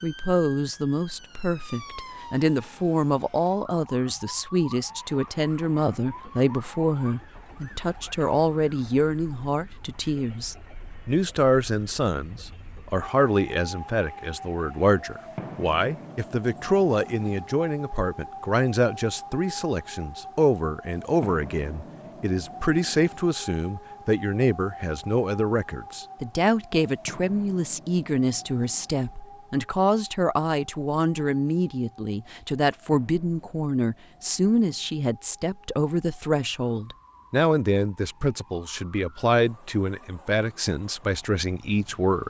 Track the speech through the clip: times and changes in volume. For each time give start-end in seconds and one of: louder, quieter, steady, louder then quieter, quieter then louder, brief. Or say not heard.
0.0-42.2 steady.